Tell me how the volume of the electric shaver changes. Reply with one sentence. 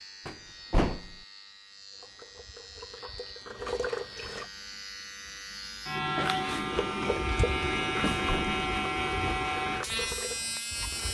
The volume of the electric shaver goes up.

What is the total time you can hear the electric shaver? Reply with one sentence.
The electric shaver can be heard for 11 seconds in total.